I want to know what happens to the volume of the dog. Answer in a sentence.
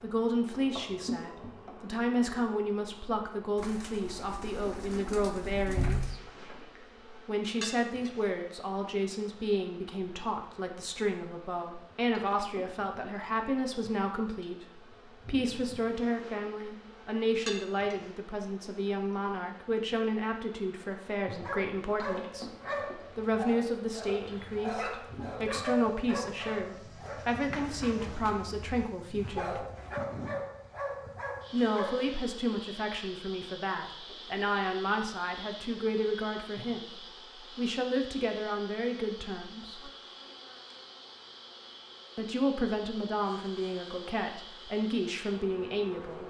The loudness of the dog stays about the same.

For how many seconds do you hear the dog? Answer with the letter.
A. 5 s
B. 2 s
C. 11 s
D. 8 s
C.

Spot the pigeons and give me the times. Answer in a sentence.
The pigeons can be heard from 3.5 to 6.2 s.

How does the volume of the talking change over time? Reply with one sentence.
The volume of the talking stays about the same.